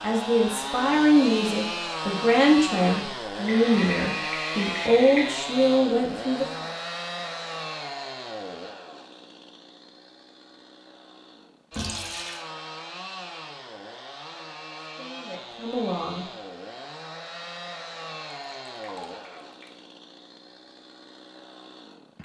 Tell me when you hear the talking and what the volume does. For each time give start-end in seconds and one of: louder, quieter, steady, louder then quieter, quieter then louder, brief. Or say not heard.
0.0-6.7 steady
14.9-16.2 brief.